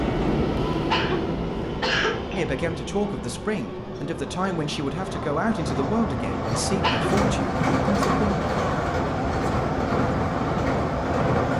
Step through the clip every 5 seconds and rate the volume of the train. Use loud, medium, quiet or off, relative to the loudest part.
medium, loud, loud.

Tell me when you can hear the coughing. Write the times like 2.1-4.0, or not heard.
0.9-2.5, 6.8-7.2.